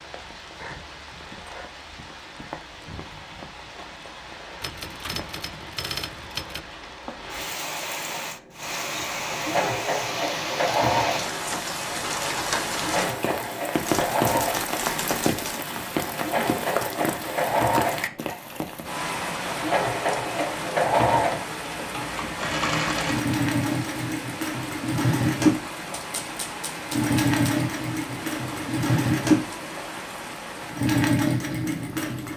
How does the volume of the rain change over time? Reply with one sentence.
The loudness of the rain goes up, then down.